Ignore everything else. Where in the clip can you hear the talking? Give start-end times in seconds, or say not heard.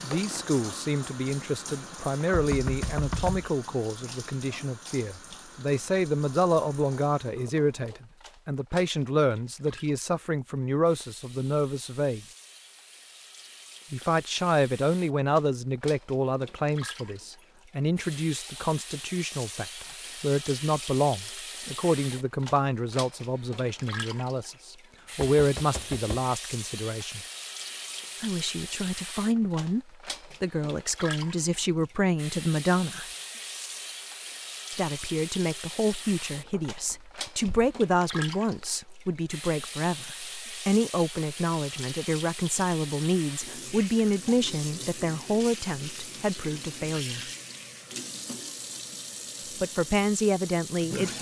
0.0-12.2, 13.9-27.2, 28.2-33.0, 34.8-47.2, 49.6-51.1.